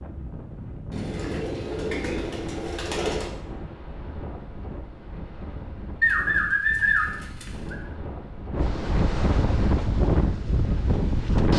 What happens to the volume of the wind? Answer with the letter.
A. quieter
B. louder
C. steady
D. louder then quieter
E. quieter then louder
B.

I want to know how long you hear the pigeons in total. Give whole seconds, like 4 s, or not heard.
4 s.